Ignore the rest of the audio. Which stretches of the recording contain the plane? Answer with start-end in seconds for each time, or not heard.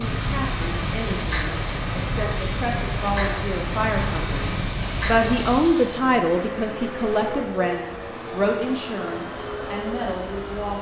0.0-10.7.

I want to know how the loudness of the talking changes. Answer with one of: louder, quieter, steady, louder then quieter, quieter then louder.
louder then quieter.